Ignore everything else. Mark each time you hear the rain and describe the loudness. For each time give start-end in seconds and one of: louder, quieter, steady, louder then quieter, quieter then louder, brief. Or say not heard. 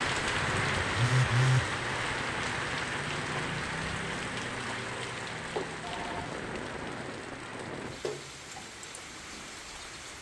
0.0-10.1 quieter.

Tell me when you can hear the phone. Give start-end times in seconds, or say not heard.
0.9-1.6, 5.5-6.2.